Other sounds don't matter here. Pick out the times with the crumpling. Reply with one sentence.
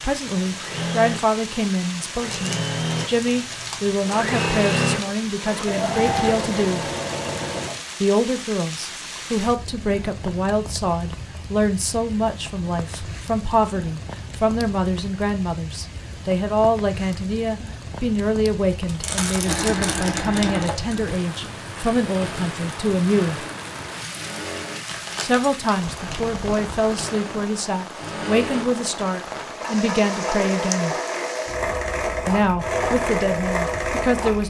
You can hear the crumpling from 2.1 to 4.2 s, from 18.9 to 20.9 s and from 24.9 to 26.2 s.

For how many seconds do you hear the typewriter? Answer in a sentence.
You can't hear the typewriter here.